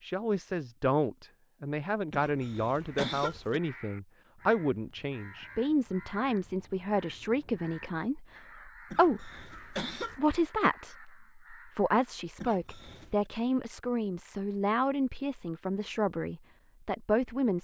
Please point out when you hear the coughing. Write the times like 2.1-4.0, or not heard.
2.1-3.6, 8.9-10.2, 12.4-13.2.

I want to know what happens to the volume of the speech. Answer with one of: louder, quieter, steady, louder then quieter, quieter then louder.
steady.